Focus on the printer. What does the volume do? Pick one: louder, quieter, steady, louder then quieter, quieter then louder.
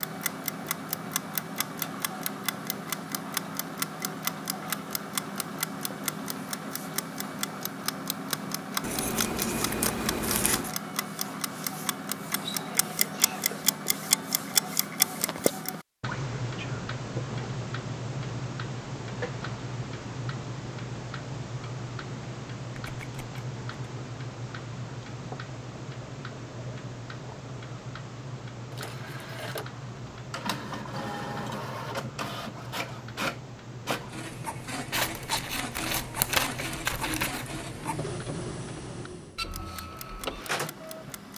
steady.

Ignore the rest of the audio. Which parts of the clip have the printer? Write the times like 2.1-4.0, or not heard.
28.7-41.3.